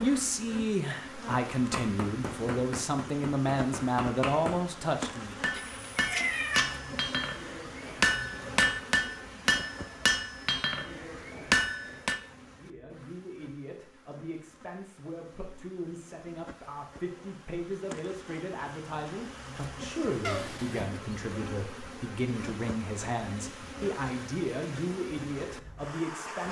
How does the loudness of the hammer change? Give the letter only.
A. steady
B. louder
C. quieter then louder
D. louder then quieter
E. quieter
B.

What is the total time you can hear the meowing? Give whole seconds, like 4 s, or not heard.
2 s.